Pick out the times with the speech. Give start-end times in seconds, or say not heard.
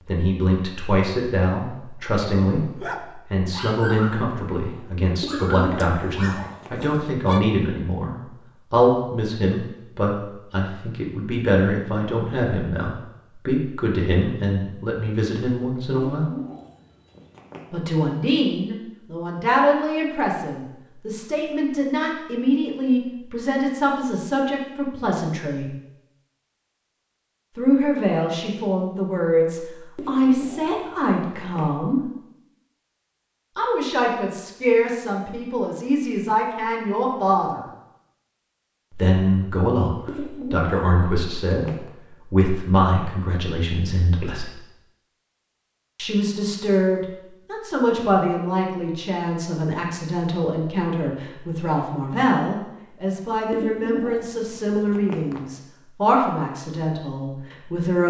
0.1-16.2, 17.7-25.7, 27.6-32.0, 33.5-37.6, 38.9-44.5, 46.0-58.0.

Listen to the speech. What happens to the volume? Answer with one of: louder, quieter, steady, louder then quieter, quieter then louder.
steady.